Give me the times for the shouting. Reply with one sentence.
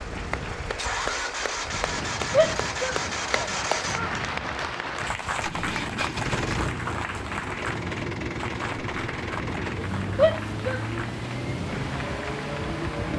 You can hear the shouting from 2.3 to 4.1 s and from 10.2 to 10.8 s.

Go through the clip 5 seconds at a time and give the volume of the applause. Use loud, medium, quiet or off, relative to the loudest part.
loud, loud, medium.